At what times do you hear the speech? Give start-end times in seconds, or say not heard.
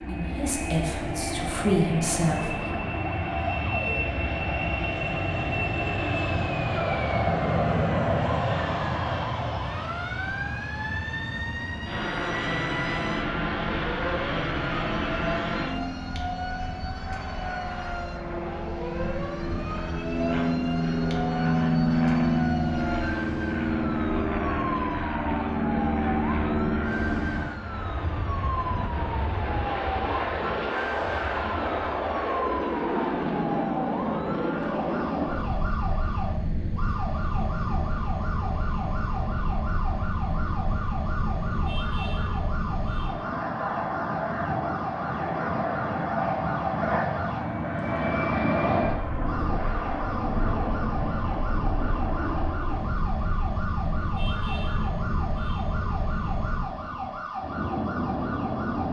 0.1-2.6.